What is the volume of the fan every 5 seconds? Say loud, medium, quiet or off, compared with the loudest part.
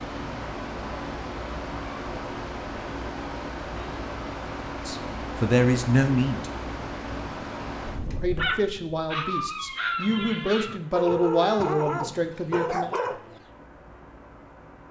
loud, loud, quiet.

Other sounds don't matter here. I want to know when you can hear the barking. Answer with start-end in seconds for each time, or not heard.
8.3-13.4.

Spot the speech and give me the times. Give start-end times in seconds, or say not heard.
4.8-6.5, 8.2-12.9.